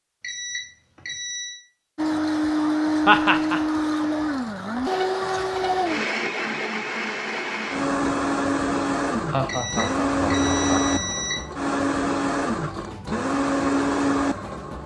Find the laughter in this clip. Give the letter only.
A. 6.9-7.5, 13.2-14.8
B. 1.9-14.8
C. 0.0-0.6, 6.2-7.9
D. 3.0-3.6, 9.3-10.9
D.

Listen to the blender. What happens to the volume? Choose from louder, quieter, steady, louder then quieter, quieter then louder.
steady.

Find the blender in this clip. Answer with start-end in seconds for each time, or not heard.
1.9-14.8.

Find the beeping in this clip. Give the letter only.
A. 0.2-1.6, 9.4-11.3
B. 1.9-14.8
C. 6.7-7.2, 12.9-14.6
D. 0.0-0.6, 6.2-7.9
A.